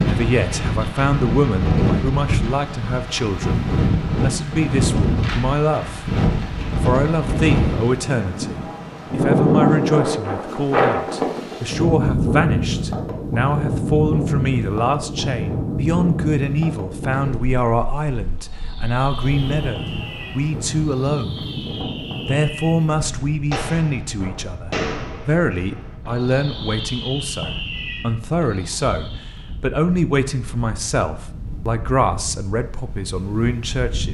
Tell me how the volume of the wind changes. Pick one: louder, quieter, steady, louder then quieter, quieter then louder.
quieter.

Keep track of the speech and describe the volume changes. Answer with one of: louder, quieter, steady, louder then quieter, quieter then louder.
steady.